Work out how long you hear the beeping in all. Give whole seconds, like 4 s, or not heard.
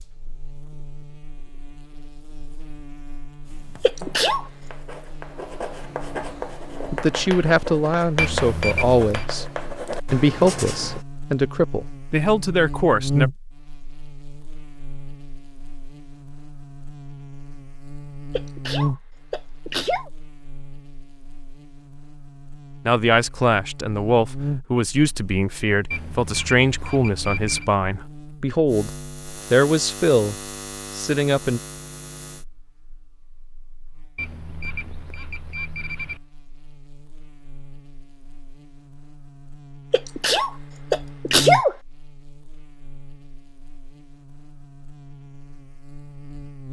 5 s.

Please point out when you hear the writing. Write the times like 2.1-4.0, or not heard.
3.4-11.1.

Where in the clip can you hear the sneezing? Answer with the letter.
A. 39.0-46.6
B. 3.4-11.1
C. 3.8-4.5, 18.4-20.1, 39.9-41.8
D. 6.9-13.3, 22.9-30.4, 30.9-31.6
C.